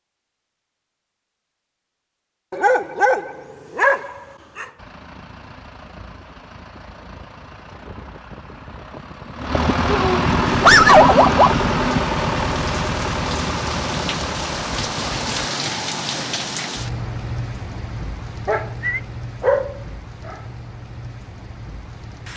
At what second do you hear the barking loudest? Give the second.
11 s.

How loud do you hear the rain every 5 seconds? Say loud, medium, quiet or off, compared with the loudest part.
off, off, loud, loud, medium.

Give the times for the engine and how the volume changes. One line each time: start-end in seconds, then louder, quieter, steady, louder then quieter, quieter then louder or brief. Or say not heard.
4.8-15.5 louder then quieter.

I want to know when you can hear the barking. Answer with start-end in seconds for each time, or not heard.
2.5-4.7, 9.8-11.6, 18.4-20.4.